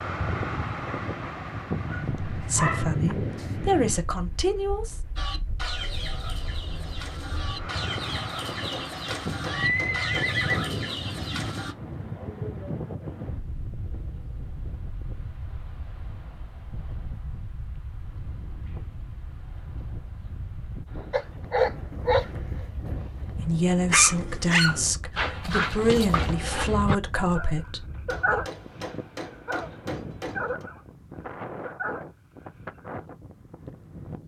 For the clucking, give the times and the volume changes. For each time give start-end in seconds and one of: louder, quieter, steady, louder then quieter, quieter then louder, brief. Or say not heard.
5.2-11.8 steady.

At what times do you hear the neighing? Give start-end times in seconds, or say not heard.
9.4-10.7.